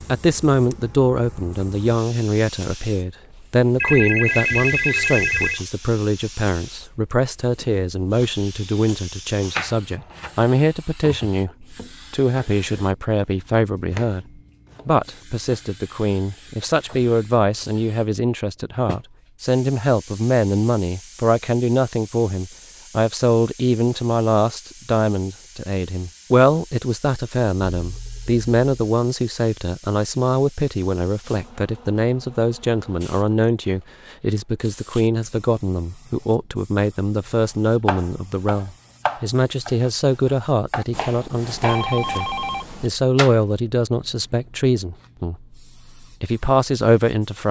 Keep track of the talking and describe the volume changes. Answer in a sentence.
The volume of the talking stays about the same.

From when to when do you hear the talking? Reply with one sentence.
You can hear the talking from 0.1 to 14.2 s and from 14.8 to 47.4 s.